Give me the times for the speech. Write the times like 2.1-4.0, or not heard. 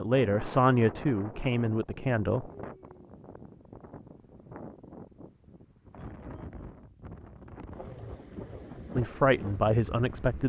0.0-2.5, 8.9-10.4.